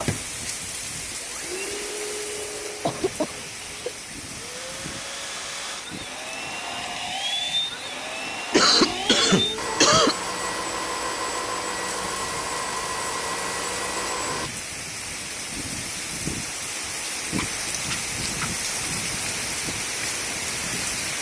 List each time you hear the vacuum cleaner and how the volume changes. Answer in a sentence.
The vacuum cleaner can be heard from 0.0 to 14.5 s, getting louder.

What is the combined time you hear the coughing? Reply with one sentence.
The coughing can be heard for 4 seconds in total.